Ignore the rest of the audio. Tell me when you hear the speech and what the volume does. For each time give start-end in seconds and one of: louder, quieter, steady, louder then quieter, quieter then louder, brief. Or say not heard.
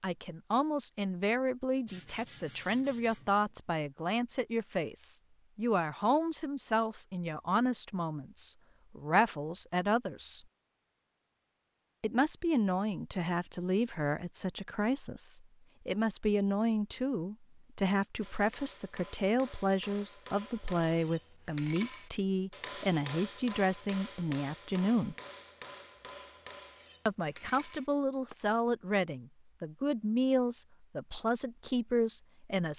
0.0-10.4 steady
12.0-25.1 steady
27.1-32.7 steady.